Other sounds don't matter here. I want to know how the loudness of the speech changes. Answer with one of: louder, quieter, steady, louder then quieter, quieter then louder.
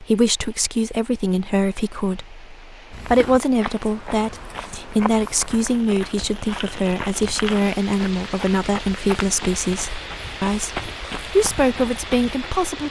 steady.